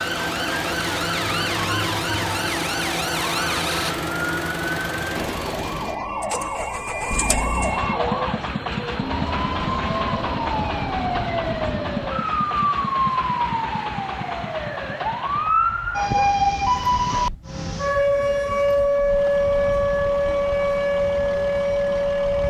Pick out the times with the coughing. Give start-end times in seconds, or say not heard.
not heard.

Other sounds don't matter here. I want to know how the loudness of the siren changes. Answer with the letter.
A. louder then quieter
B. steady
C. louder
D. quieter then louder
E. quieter
C.